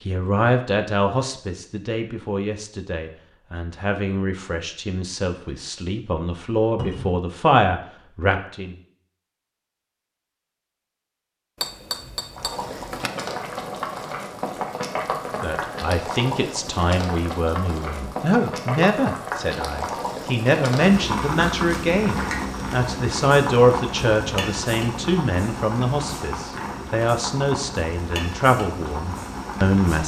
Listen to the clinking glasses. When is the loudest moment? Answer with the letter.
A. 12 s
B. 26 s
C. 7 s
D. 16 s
A.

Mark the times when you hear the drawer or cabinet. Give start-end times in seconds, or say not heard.
6.8-7.2.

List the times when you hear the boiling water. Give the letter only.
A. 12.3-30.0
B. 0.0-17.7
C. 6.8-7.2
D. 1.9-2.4
A.